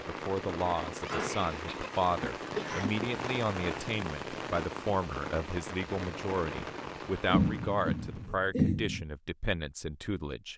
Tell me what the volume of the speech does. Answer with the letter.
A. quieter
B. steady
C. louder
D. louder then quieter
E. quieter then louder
B.